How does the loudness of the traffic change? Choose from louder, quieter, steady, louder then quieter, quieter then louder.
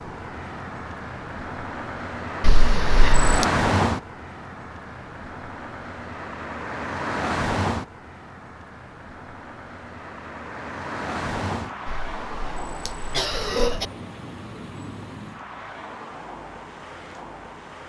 quieter.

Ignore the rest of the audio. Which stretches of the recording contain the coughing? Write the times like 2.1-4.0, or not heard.
2.4-3.5, 11.8-13.8.